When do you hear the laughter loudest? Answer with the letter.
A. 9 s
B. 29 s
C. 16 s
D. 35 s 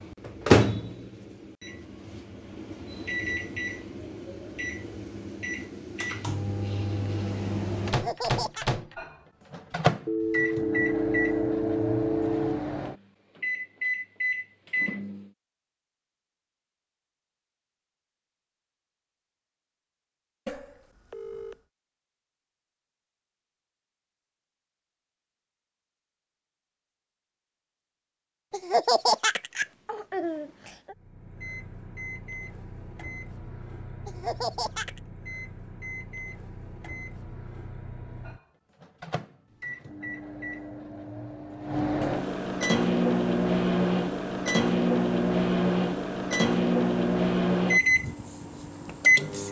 B.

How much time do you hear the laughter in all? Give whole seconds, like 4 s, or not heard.
4 s.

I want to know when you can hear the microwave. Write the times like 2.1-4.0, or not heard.
0.0-15.3, 30.9-49.4.